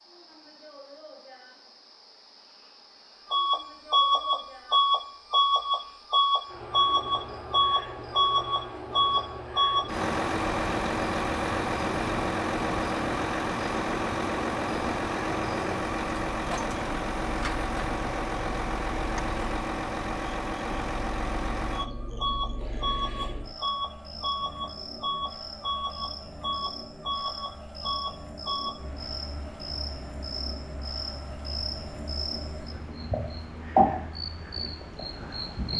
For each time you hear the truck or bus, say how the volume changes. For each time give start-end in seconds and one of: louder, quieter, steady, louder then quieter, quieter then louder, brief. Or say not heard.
3.3-35.7 quieter.